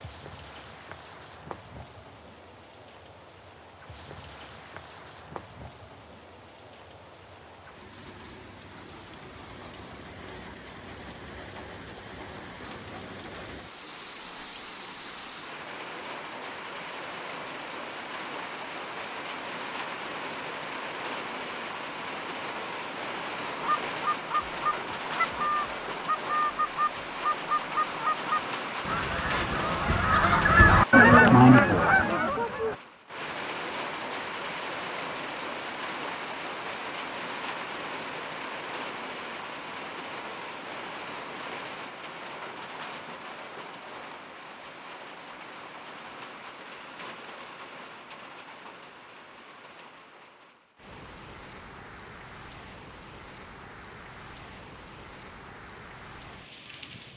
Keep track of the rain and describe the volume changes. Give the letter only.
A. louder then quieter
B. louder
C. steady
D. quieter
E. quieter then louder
A.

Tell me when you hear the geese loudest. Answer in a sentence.
The loudest moment of the geese is at 31 seconds.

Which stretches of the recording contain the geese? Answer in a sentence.
You can hear the geese from 23.6 to 32.8 s.